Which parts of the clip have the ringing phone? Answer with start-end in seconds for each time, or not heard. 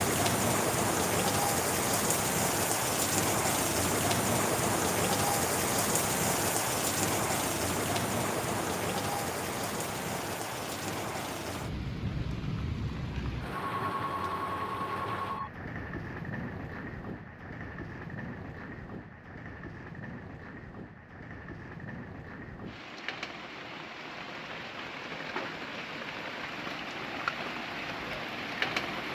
13.8-15.5.